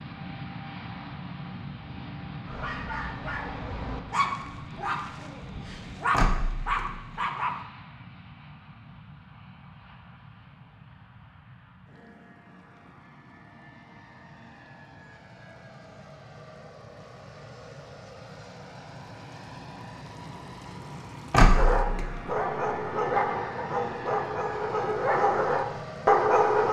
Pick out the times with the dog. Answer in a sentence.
The dog can be heard from 2.5 to 7.6 s and from 21.6 to 26.6 s.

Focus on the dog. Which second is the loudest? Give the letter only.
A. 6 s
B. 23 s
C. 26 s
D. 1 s
C.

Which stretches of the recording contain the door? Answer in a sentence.
The door can be heard from 6.1 to 6.9 s and from 21.3 to 22.1 s.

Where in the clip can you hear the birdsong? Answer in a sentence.
You can't hear the birdsong here.